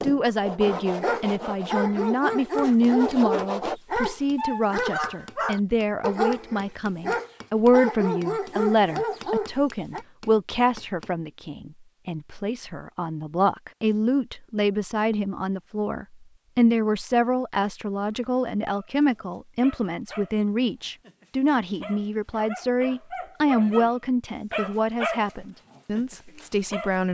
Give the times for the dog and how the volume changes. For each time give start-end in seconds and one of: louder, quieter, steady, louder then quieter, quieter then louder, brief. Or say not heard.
1.0-10.1 steady
18.1-27.0 louder.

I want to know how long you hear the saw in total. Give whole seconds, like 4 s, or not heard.
4 s.